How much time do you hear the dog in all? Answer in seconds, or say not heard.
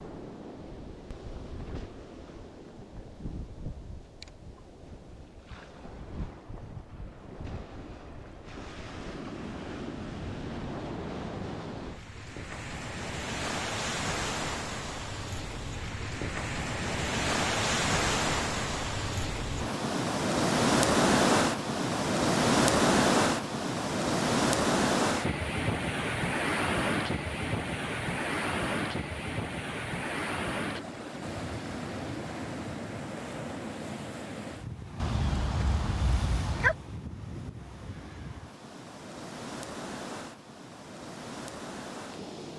2 s.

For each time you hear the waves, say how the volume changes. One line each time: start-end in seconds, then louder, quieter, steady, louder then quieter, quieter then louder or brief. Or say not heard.
0.0-42.5 louder then quieter.